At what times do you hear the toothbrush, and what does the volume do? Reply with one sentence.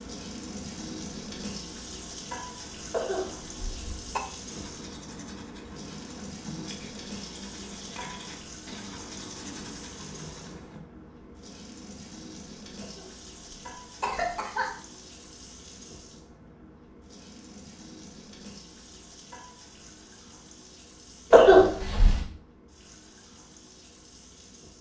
You can hear the toothbrush from 4.5 to 10.8 s, at a steady volume.